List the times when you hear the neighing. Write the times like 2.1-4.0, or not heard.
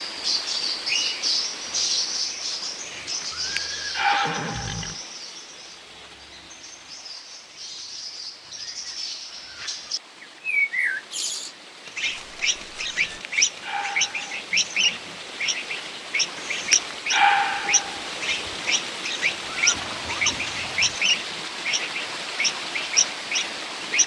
3.3-5.0, 12.0-13.2, 19.4-21.0.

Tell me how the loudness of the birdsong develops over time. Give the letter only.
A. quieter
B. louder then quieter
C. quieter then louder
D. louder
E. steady
C.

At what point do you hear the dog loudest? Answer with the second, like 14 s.
17 s.